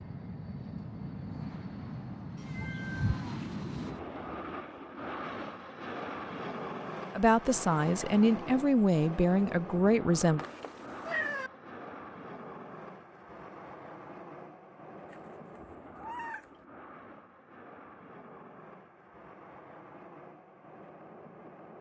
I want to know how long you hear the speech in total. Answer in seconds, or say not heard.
3 s.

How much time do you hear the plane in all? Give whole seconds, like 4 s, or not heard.
22 s.